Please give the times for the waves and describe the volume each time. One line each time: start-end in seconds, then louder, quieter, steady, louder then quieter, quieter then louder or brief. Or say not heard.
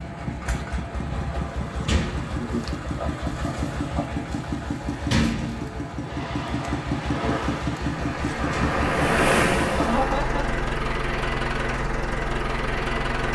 6.0-13.2 louder then quieter.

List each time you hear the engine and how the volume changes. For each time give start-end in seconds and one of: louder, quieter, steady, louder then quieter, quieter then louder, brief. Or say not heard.
0.0-13.2 steady.